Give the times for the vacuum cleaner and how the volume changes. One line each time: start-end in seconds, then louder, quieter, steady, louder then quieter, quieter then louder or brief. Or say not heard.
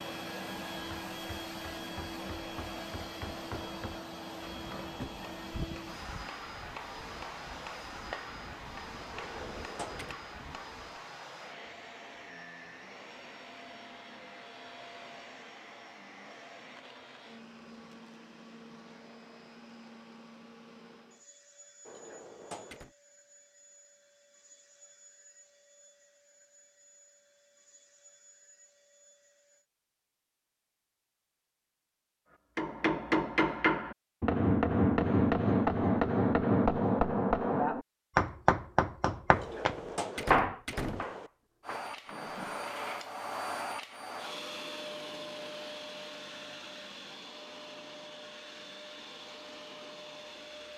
0.0-29.6 quieter
41.6-50.7 quieter.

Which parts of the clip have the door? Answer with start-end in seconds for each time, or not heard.
9.1-10.2, 21.9-22.9, 39.3-41.3.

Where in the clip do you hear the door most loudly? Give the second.
40 s.